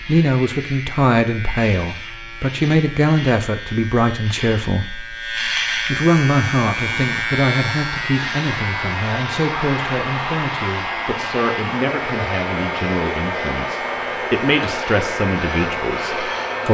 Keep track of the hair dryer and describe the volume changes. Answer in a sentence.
The volume of the hair dryer goes up.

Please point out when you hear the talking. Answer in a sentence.
The talking can be heard from 0.0 to 16.7 s.